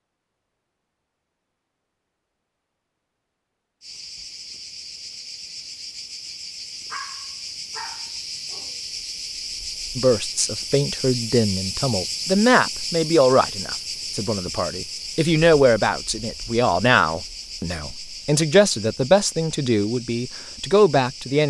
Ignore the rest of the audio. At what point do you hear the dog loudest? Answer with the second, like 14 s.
7 s.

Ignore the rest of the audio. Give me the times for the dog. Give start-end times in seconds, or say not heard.
6.9-8.8.